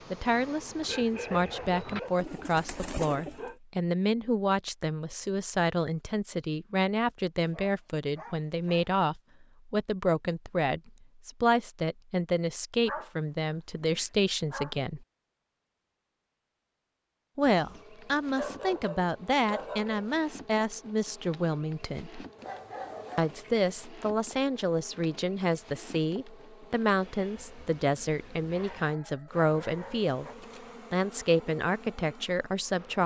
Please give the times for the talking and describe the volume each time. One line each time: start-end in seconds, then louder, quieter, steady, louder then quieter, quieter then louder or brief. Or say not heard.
0.1-15.0 steady
17.4-22.2 steady
23.1-30.2 steady
30.9-33.0 brief.